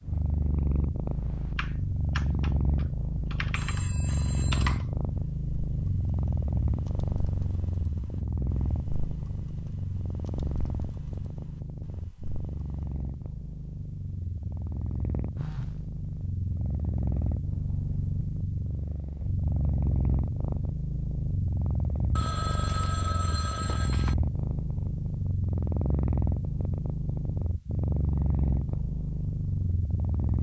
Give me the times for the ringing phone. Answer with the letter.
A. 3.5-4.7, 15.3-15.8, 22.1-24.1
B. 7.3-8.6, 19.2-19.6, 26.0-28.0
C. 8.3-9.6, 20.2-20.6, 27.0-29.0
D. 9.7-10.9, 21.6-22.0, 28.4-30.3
A.